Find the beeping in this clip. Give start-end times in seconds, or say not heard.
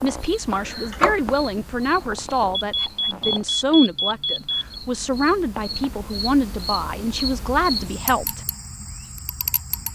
2.5-4.8.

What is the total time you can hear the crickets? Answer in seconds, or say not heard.
10 s.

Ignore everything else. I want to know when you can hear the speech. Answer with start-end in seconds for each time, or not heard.
0.0-8.4.